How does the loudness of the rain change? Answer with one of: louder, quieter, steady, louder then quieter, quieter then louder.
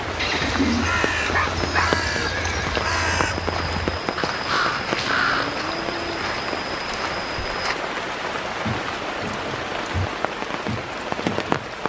steady.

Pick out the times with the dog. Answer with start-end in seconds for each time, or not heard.
1.3-2.3.